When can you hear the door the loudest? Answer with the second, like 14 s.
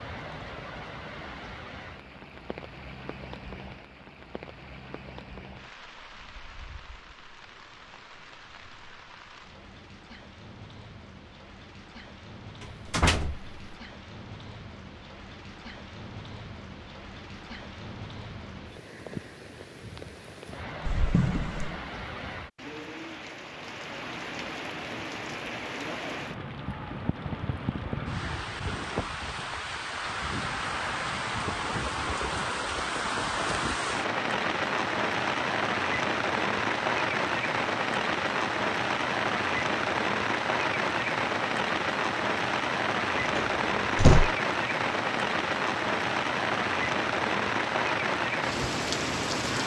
44 s.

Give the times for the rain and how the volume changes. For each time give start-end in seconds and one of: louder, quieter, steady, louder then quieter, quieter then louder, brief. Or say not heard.
0.0-49.6 louder.